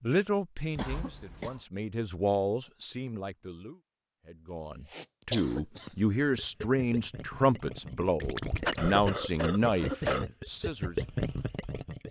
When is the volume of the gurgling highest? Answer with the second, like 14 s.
11 s.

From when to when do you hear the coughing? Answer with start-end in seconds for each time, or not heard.
0.8-1.6, 4.9-5.9, 8.7-10.2.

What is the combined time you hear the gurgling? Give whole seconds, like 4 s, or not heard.
6 s.